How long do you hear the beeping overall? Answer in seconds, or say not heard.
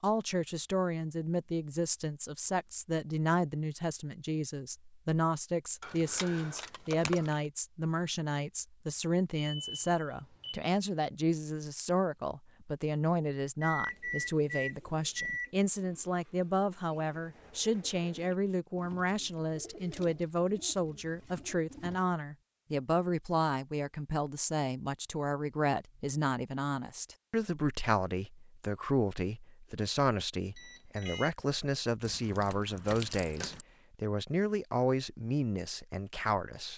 4 s.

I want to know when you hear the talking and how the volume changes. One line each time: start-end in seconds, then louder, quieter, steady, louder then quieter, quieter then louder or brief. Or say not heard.
0.0-36.7 steady.